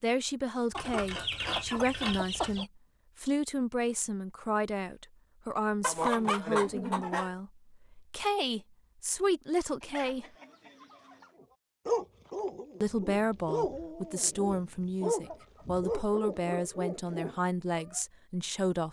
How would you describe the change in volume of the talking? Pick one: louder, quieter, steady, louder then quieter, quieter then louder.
steady.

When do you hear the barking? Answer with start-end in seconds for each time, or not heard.
11.4-18.0.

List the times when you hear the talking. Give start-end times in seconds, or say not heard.
0.0-10.2, 12.8-18.8.